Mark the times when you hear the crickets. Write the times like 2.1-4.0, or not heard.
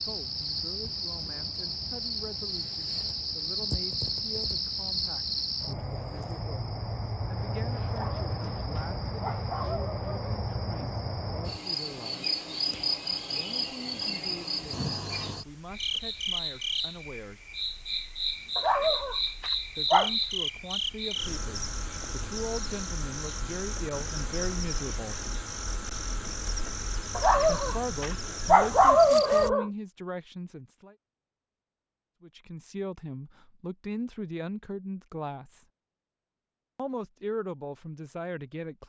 0.0-29.5.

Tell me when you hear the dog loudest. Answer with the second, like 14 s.
29 s.